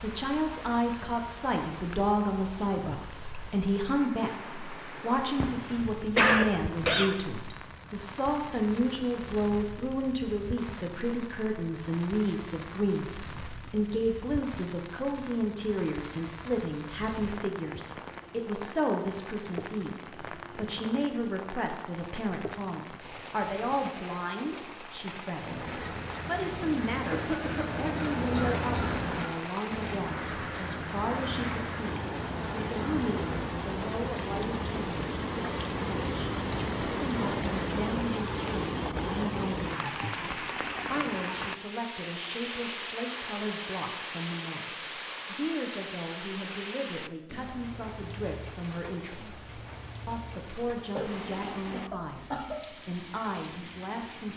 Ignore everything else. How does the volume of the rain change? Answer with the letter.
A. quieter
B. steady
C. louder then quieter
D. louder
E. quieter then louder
C.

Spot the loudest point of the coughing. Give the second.
6 s.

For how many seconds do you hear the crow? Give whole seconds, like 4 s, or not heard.
8 s.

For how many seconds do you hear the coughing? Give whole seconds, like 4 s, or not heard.
4 s.